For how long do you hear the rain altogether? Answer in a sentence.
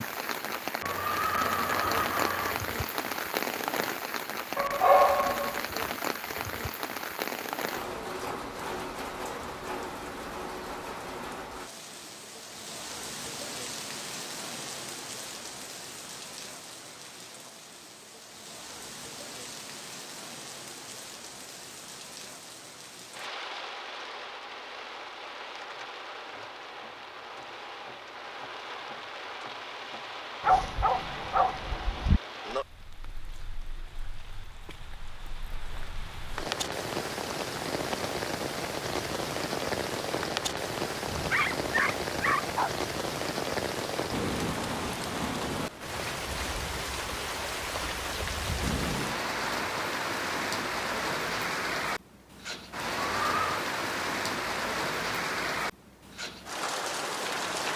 The rain can be heard for 58 seconds in total.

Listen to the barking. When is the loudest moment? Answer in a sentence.
The loudest moment of the barking is at 5 seconds.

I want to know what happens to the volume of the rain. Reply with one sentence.
The loudness of the rain goes down, then up.